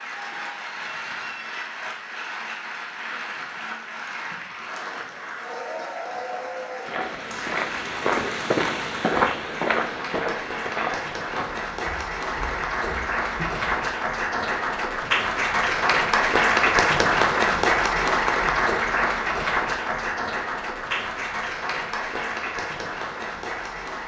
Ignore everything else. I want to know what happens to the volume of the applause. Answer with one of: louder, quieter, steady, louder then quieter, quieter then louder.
louder then quieter.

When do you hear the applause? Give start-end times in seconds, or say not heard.
0.0-24.0.